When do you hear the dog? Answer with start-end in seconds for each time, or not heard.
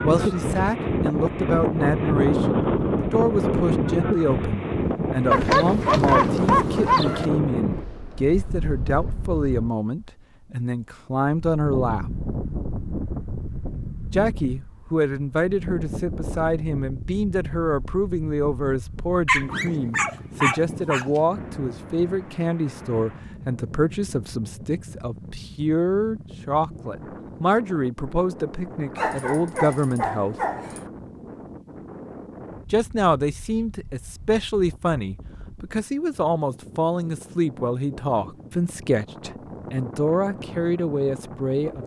5.3-7.3, 19.2-21.1, 28.9-30.9.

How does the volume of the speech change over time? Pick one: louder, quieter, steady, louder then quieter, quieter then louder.
steady.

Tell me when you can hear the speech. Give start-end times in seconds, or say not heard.
0.0-12.2, 14.1-30.4, 32.7-41.8.